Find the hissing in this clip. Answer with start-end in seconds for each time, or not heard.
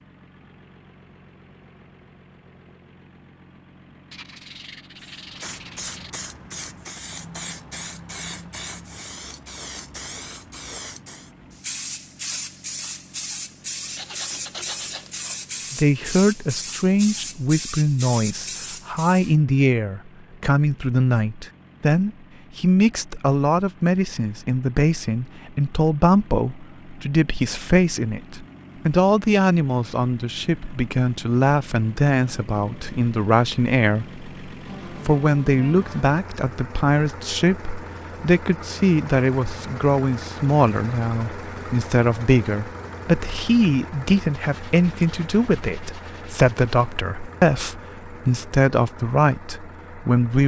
5.0-19.4.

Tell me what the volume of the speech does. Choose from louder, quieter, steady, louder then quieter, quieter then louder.
steady.